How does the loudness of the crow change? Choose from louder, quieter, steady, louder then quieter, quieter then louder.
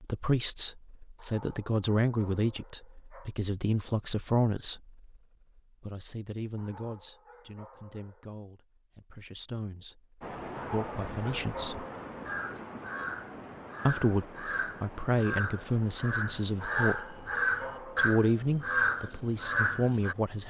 louder.